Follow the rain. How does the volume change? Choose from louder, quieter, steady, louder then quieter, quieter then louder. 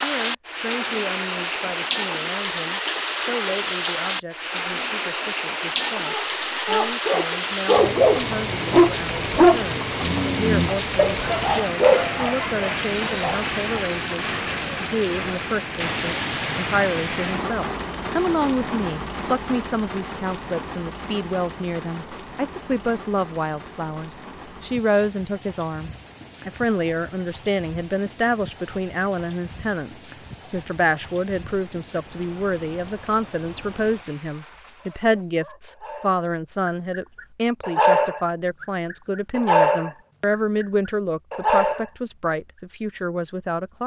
quieter.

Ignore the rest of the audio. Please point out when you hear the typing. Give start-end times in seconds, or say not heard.
not heard.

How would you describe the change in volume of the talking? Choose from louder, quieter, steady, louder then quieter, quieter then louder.
louder.